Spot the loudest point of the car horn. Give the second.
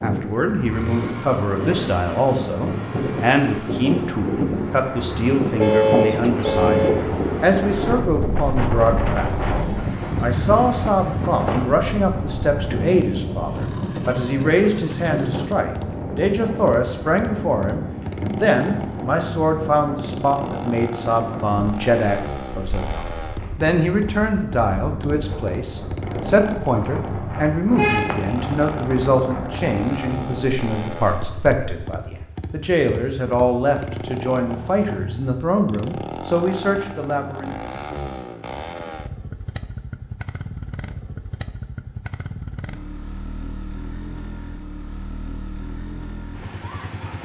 6 s.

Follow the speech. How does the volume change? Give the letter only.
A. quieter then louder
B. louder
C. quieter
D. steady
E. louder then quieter
D.